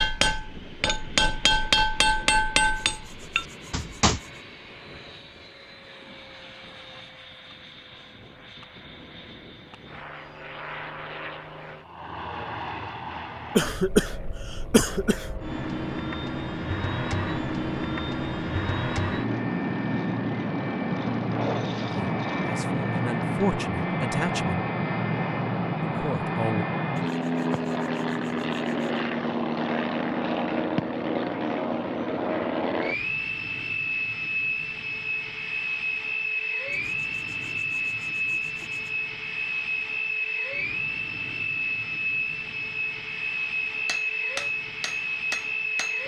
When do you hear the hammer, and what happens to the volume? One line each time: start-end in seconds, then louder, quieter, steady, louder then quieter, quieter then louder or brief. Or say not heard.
0.0-4.2 louder then quieter
43.9-46.0 brief.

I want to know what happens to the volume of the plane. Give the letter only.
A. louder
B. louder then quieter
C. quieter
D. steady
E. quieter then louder
A.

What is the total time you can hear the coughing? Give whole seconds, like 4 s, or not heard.
2 s.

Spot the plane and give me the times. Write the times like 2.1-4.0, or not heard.
0.0-46.0.